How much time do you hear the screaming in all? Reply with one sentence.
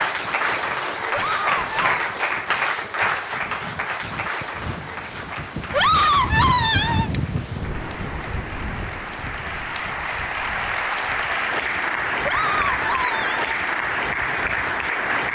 You can hear the screaming for 4 seconds altogether.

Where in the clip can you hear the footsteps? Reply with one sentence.
The footsteps can't be heard in this clip.